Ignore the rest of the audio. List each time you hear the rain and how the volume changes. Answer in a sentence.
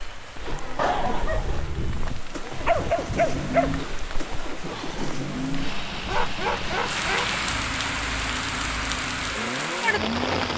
You can hear the rain from 0.0 to 10.5 s, getting louder.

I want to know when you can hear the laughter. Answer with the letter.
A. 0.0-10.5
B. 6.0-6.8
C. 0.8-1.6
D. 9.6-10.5
C.